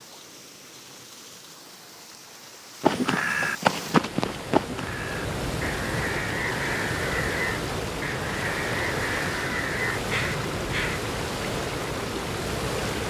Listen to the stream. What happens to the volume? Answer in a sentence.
The volume of the stream goes up.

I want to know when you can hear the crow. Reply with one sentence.
The crow can be heard from 2.8 to 11.1 s.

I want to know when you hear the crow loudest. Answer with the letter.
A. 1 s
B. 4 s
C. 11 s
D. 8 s
B.